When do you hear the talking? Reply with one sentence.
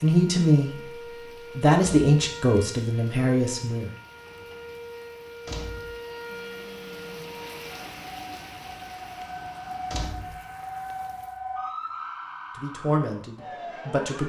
The talking can be heard from 0.0 to 0.8 s, from 1.6 to 3.9 s and from 12.6 to 14.2 s.